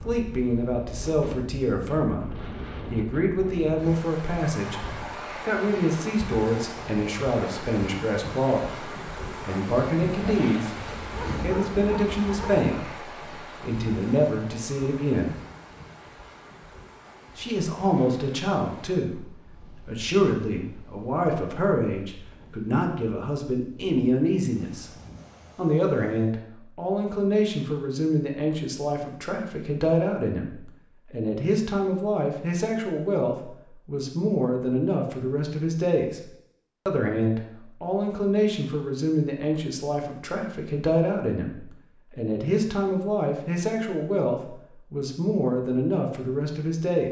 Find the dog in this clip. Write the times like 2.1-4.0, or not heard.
10.8-12.7.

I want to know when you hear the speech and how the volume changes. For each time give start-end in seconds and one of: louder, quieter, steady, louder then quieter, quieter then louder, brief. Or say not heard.
0.1-10.8 steady
11.4-12.8 brief
13.6-15.3 brief
17.4-24.9 steady
25.6-36.2 steady
36.9-47.0 steady.